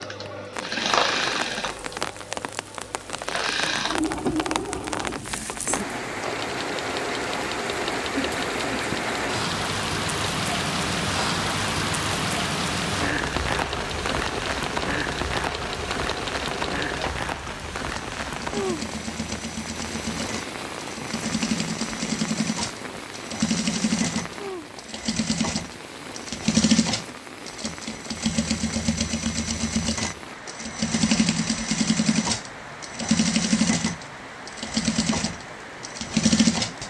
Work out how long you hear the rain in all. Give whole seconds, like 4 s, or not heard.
37 s.